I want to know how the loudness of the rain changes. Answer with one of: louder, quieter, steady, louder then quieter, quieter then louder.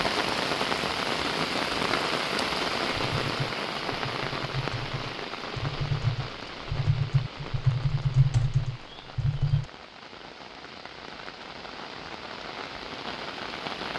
quieter then louder.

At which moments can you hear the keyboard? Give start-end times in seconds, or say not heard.
2.9-9.7.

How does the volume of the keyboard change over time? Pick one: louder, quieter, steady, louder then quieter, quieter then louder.
louder.